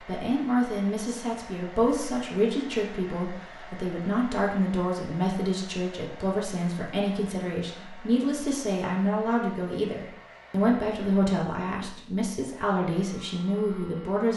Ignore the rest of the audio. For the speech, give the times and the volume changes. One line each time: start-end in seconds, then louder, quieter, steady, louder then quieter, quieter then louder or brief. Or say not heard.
0.1-14.3 steady.